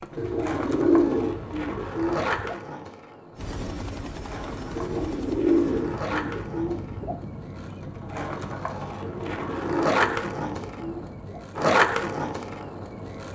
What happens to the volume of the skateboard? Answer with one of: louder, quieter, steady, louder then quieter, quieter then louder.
quieter then louder.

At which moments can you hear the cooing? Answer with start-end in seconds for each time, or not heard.
0.1-2.5, 4.8-7.2, 9.0-11.4.